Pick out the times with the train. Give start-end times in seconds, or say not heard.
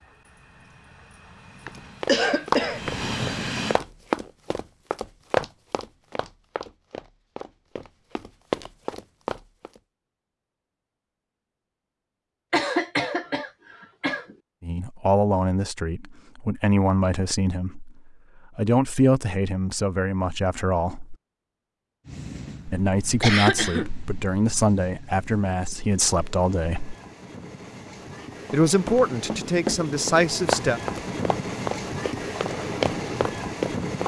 0.0-3.8, 22.1-34.0.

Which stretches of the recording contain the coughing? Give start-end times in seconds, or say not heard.
1.6-2.8, 12.5-14.3, 23.2-23.9.